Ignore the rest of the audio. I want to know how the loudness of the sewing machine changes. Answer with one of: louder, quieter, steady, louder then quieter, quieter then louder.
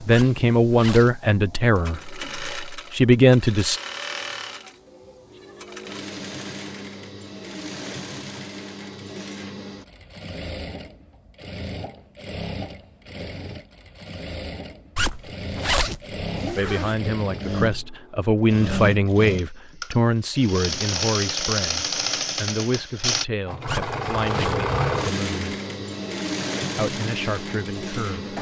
louder.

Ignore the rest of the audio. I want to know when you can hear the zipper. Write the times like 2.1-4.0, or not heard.
0.1-1.1, 14.9-17.1, 23.6-24.6.